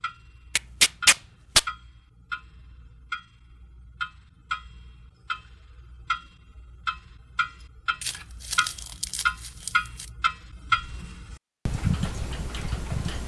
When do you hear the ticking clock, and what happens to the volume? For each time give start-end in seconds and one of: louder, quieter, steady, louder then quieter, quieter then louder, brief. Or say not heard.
0.0-13.2 louder.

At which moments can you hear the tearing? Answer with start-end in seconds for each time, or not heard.
0.6-1.6, 8.0-10.1.